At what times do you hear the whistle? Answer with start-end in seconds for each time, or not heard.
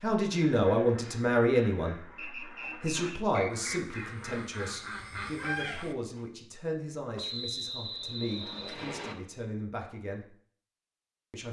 2.1-3.8, 7.2-9.2.